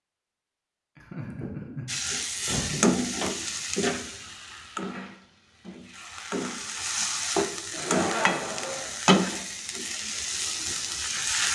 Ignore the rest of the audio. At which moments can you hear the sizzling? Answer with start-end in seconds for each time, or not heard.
1.9-11.5.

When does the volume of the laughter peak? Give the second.
8 s.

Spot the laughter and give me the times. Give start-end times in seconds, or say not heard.
0.9-3.1, 7.7-8.9.